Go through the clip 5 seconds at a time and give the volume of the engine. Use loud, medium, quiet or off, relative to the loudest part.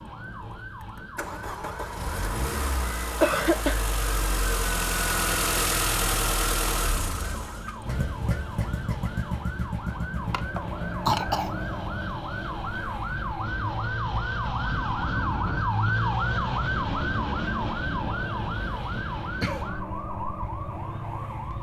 loud, loud, medium, medium, medium.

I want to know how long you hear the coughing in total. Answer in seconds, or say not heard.
2 s.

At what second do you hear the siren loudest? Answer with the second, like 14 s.
16 s.